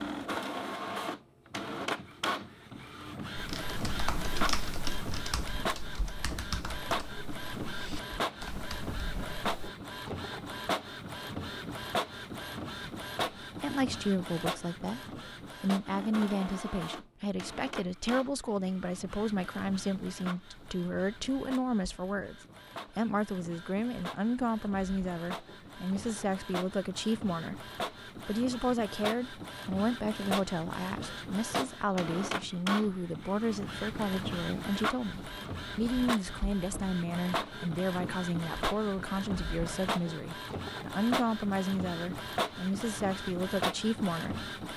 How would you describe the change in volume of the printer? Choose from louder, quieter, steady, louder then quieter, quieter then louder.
quieter then louder.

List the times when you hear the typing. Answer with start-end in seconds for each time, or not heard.
3.4-9.7.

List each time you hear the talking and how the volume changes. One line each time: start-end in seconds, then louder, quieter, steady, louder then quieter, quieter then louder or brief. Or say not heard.
13.4-44.5 steady.